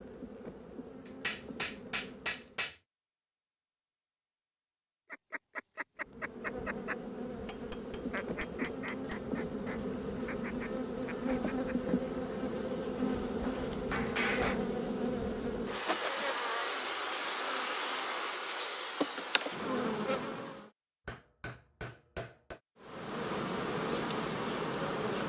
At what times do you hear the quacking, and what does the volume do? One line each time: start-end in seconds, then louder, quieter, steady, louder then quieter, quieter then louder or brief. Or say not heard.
5.1-11.9 quieter.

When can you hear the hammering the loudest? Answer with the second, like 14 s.
14 s.